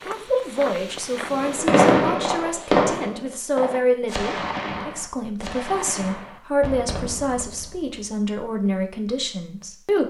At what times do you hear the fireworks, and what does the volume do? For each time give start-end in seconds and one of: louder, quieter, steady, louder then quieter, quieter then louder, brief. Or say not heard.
1.3-8.0 quieter.